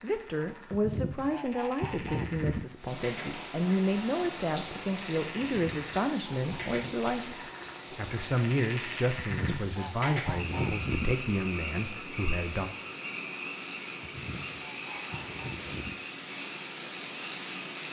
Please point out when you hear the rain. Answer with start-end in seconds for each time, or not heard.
2.8-17.8.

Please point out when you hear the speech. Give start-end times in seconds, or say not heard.
0.0-7.3, 8.0-12.7.